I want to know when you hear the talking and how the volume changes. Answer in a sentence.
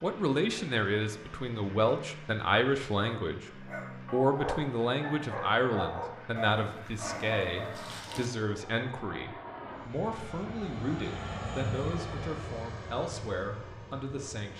You can hear the talking from 0.0 to 14.5 s, getting quieter.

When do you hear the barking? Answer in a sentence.
You can hear the barking from 3.0 to 8.3 s.